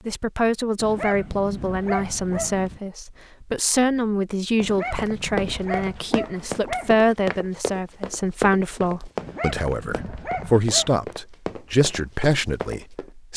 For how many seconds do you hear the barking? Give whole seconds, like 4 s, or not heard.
6 s.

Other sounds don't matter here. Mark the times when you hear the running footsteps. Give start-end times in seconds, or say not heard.
4.6-13.1.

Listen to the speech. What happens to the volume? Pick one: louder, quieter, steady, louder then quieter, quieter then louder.
steady.